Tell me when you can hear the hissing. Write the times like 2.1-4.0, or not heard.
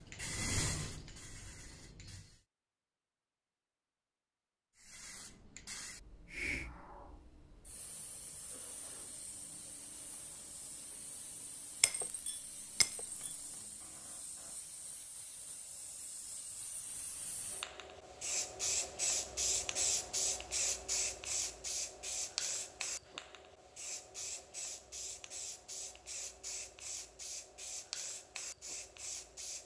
0.0-2.5, 4.8-29.6.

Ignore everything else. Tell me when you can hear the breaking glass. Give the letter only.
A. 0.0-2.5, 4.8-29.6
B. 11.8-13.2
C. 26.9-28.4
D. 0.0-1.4
B.